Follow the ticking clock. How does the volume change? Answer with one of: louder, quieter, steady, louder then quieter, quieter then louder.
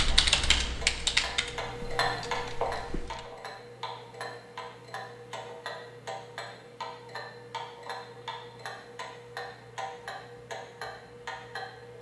quieter.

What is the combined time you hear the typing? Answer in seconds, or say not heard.
3 s.